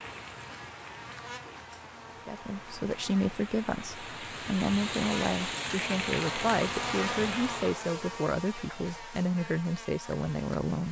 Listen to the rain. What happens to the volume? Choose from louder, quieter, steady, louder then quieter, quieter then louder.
louder.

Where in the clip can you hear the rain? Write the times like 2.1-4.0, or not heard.
0.0-7.8.